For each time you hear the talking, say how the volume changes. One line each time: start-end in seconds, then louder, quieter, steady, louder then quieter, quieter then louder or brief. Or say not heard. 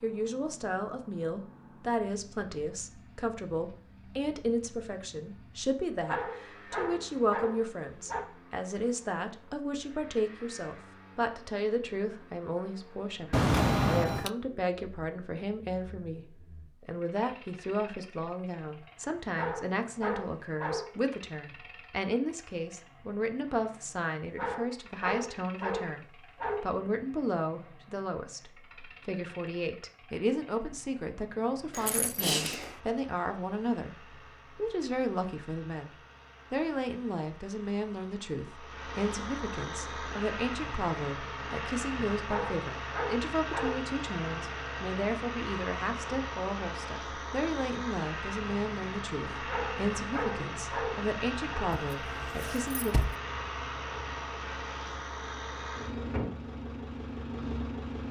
0.0-53.0 steady.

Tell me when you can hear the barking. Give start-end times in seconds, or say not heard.
6.0-8.2, 19.2-20.9, 24.2-26.6, 42.1-43.9, 49.4-51.7.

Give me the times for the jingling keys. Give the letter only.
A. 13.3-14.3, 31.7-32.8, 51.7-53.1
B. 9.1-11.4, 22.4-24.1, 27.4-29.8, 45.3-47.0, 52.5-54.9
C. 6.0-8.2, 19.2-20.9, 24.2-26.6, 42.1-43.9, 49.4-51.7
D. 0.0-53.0
A.